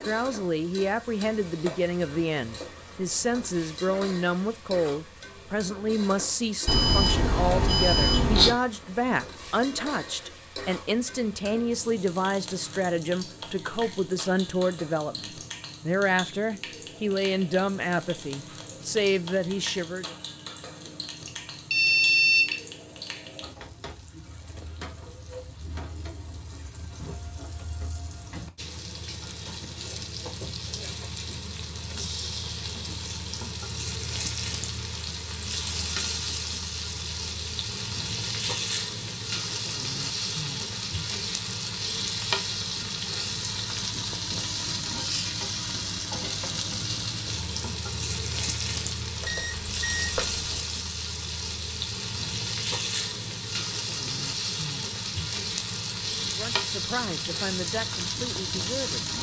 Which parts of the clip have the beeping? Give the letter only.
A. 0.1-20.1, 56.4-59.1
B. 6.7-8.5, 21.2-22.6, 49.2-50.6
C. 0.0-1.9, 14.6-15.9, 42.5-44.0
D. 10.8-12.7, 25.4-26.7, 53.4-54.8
B.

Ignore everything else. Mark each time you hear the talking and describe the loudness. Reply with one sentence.
You can hear the talking from 0.1 to 20.1 s, at a steady volume; and briefly from 56.4 to 59.1 s.